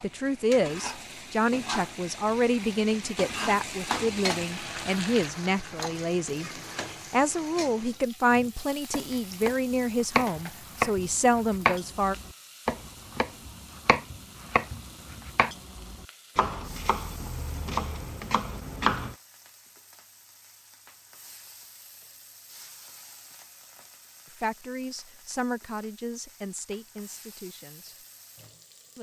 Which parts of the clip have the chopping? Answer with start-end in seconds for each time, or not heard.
8.3-19.1.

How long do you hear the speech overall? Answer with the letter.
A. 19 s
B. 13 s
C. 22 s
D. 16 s
D.